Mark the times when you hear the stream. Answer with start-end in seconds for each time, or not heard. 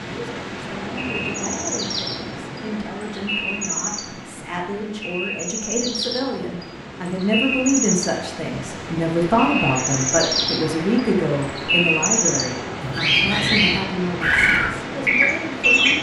0.0-15.9.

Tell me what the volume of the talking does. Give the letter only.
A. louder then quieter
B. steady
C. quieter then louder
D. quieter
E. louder
A.